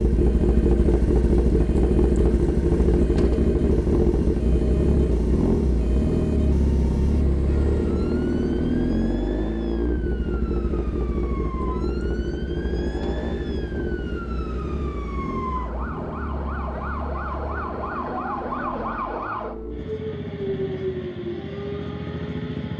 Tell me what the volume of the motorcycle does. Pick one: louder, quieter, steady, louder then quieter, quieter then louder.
quieter.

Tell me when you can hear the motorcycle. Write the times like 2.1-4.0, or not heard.
0.0-22.7.